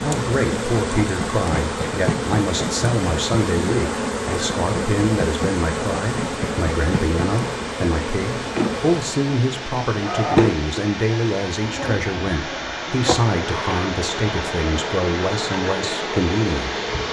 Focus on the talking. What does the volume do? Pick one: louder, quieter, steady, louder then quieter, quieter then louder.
steady.